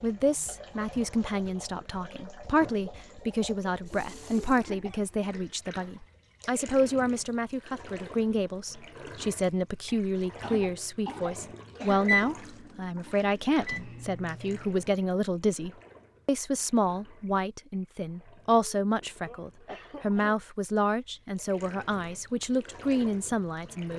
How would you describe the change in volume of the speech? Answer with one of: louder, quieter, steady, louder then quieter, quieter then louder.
steady.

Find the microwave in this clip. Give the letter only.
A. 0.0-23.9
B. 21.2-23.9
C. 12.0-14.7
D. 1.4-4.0
C.